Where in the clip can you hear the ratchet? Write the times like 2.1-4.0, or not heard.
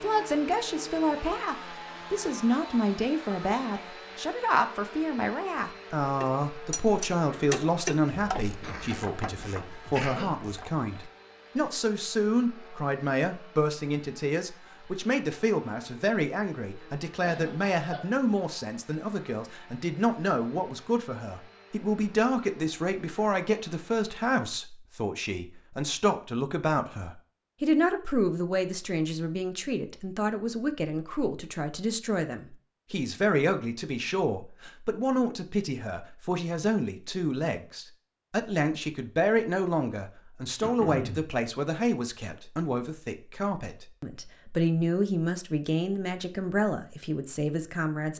6.2-11.1.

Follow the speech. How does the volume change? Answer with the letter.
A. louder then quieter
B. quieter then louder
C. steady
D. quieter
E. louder
C.